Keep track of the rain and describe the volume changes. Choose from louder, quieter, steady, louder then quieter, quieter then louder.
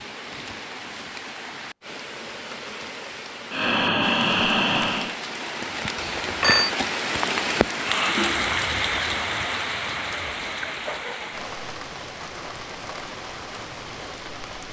louder then quieter.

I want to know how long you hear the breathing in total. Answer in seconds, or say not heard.
2 s.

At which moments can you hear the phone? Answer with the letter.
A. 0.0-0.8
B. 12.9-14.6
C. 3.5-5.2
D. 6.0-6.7
D.